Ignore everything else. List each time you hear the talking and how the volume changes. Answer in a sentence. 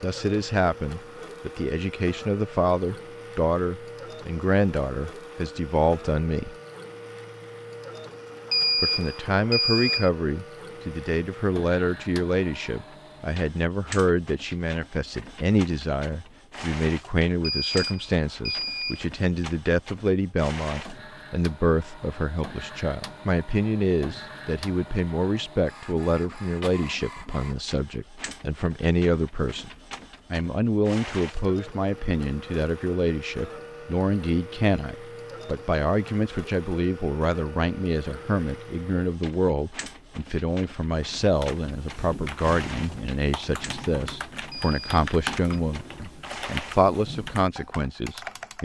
The talking can be heard from 0.0 to 6.5 s, at a steady volume; from 8.8 to 29.7 s, at a steady volume; and from 30.3 to 48.5 s, at a steady volume.